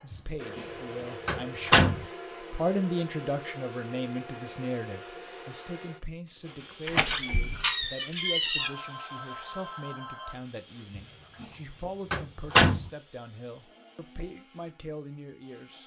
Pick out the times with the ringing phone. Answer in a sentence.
You can hear the ringing phone from 8.6 to 10.3 s.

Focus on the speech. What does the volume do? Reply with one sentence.
The loudness of the speech goes down.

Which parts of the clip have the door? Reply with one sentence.
You can hear the door from 0.1 to 0.7 s, from 1.2 to 2.0 s, from 6.8 to 8.7 s, from 10.9 to 11.4 s and from 12.1 to 12.9 s.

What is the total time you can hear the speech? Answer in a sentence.
You can hear the speech for 16 seconds altogether.